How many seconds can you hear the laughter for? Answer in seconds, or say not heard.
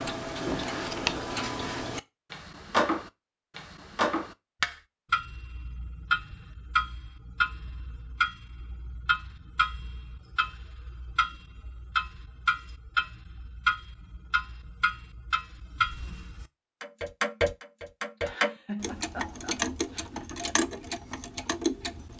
2 s.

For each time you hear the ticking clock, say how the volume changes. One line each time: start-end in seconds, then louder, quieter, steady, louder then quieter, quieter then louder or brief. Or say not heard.
0.0-22.1 steady.